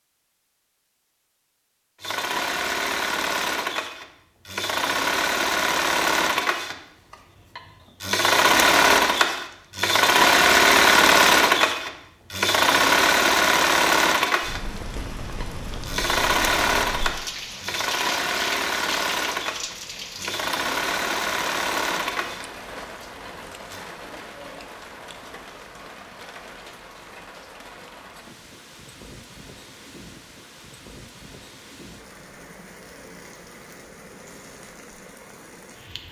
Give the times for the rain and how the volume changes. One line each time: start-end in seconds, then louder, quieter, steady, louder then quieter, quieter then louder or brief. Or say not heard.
14.4-36.0 quieter.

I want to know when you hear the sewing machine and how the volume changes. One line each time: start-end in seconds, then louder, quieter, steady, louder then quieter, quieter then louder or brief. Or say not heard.
2.0-23.8 louder then quieter.